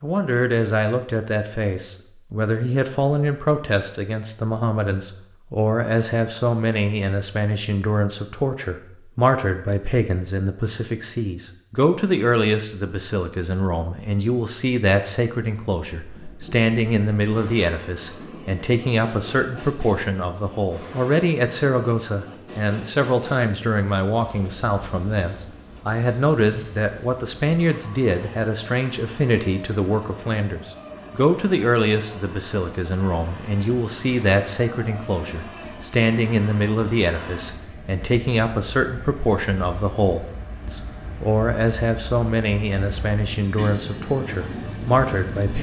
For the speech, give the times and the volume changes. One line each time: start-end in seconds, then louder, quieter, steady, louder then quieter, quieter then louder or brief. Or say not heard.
0.0-45.5 steady.